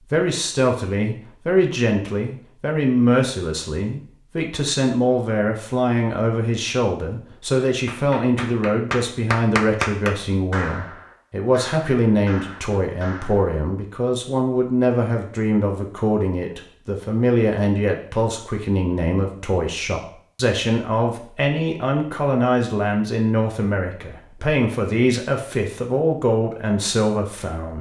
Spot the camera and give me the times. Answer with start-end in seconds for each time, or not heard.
not heard.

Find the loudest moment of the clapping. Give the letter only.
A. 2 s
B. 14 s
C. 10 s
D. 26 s
C.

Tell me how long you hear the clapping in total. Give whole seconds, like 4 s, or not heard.
6 s.